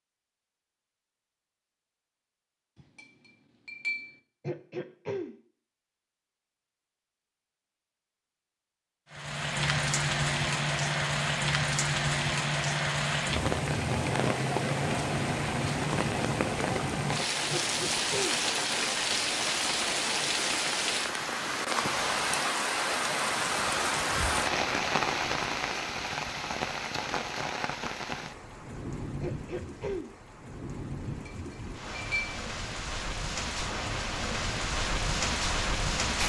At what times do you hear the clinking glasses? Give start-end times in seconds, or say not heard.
2.8-4.2, 31.1-32.4.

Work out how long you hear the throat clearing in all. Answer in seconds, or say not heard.
3 s.